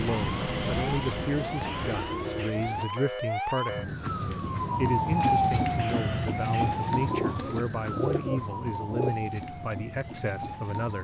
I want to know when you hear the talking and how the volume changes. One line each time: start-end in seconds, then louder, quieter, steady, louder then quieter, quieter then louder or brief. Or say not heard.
0.0-11.0 steady.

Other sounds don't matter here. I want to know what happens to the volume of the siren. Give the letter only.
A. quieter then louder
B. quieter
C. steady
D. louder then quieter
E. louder
D.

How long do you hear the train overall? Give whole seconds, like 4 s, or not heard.
2 s.